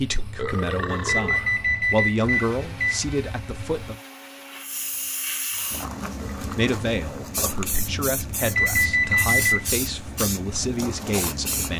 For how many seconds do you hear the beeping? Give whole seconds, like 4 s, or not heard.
3 s.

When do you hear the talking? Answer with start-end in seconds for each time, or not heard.
0.0-4.0, 6.4-11.7.